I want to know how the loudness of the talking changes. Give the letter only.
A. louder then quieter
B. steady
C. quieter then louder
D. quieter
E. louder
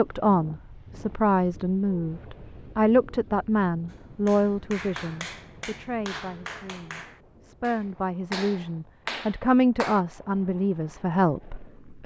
C.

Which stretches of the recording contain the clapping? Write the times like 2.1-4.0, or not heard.
3.9-10.1.